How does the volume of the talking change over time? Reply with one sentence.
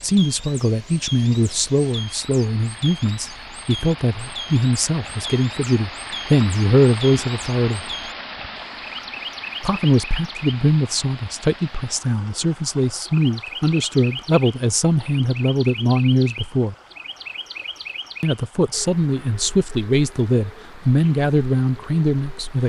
The volume of the talking stays about the same.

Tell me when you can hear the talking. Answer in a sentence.
You can hear the talking from 0.0 to 7.8 s, from 9.6 to 16.8 s and from 18.2 to 22.6 s.